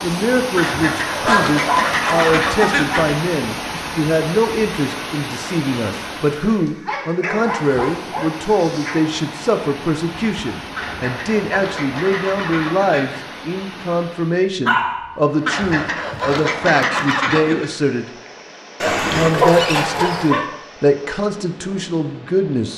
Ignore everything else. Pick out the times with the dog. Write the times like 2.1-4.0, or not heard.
1.2-2.9, 6.4-9.0, 14.7-15.1, 18.8-20.4.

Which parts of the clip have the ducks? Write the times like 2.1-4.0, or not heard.
0.6-3.1, 10.8-13.2, 15.4-17.7.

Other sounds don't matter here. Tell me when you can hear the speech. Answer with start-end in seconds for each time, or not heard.
0.0-18.1, 19.1-22.7.